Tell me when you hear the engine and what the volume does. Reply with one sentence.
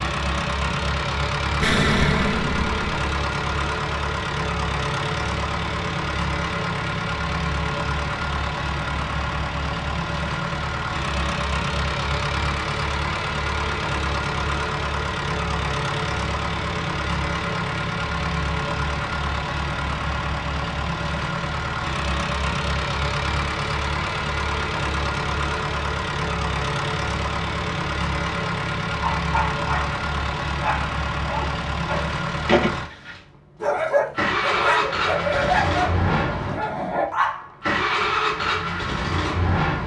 You can hear the engine from 0.0 to 39.8 s, at a steady volume.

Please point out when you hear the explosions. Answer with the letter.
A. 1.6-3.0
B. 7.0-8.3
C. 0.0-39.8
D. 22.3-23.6
A.